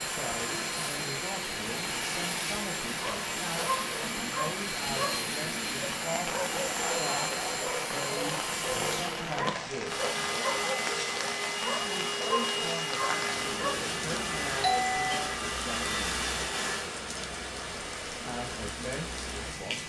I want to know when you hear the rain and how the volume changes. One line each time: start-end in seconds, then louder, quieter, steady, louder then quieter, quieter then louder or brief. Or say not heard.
0.0-19.8 steady.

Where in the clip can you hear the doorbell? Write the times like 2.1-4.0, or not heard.
14.6-15.3.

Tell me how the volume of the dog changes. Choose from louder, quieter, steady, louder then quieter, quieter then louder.
steady.